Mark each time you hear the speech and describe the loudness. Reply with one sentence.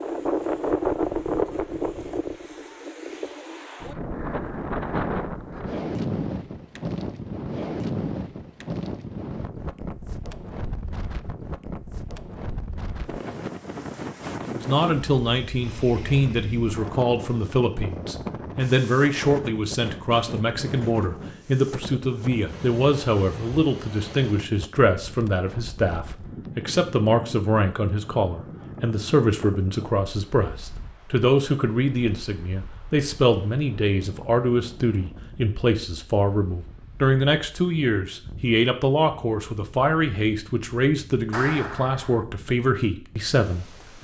The speech can be heard from 14.5 to 43.9 s, at a steady volume.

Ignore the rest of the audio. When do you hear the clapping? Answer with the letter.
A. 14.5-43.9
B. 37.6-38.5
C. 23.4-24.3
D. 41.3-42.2
D.